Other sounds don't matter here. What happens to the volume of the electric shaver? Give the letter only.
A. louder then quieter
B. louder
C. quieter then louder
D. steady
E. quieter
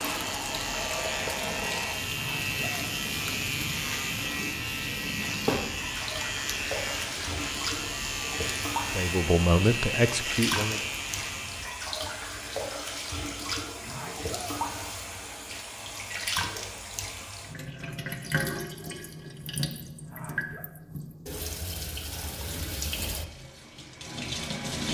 D.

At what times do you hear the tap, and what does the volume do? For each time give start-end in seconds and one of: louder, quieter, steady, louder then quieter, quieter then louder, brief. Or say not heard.
0.0-24.8 steady.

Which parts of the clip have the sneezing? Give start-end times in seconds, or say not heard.
2.1-3.0, 13.8-14.7, 20.1-20.7.